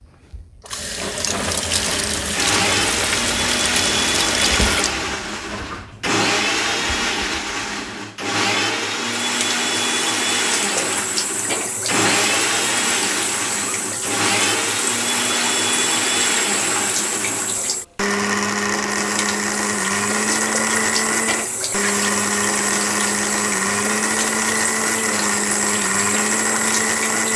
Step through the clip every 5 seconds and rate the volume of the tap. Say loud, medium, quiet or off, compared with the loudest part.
loud, medium, loud, loud, loud, loud.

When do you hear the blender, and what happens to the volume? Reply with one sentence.
The blender can be heard from 1.6 to 27.3 s, at a steady volume.